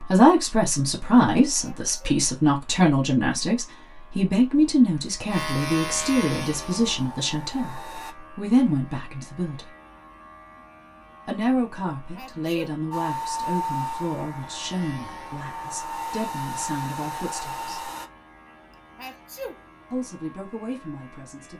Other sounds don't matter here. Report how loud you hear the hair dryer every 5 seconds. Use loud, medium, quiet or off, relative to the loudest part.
off, medium, loud, loud, off.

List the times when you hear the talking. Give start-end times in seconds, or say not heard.
0.0-9.7, 11.2-17.8, 19.9-21.5.